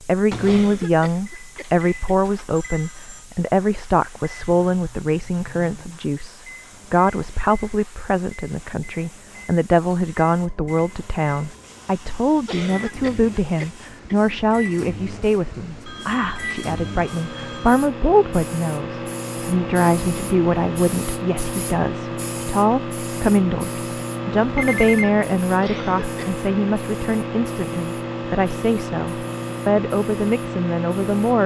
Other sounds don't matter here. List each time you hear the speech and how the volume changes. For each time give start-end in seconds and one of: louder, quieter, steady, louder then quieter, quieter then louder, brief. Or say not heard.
0.0-31.4 steady.